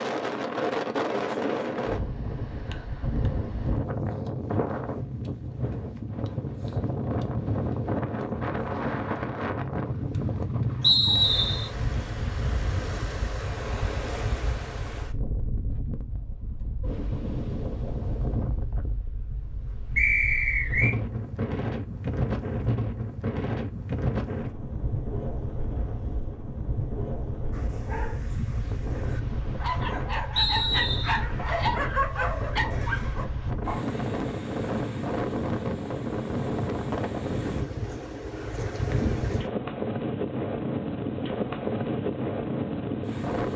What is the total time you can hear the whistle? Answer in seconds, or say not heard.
3 s.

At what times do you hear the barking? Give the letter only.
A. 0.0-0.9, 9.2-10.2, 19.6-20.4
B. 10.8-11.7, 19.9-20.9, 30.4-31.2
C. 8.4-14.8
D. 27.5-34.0
D.